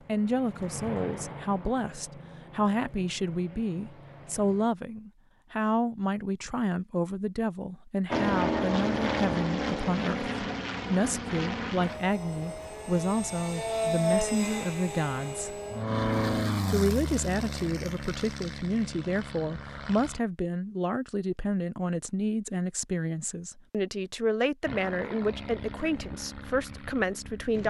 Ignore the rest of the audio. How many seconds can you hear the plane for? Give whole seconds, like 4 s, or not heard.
20 s.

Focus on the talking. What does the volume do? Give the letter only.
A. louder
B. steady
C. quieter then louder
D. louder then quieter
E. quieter
B.